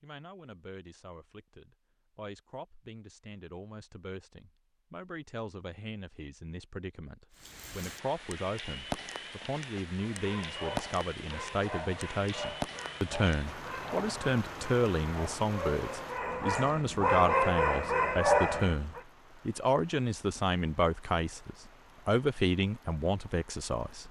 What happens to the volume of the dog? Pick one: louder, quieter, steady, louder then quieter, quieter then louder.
louder.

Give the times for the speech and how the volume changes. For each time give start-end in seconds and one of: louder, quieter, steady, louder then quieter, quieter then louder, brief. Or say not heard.
0.0-24.0 louder.